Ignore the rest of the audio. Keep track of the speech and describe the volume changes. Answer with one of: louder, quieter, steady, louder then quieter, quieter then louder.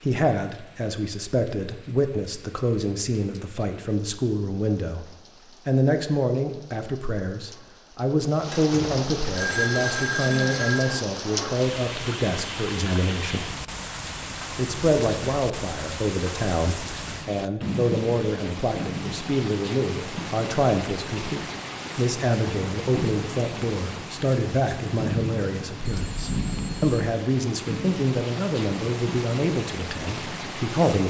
steady.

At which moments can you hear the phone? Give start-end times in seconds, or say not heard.
8.5-10.9, 25.9-27.0.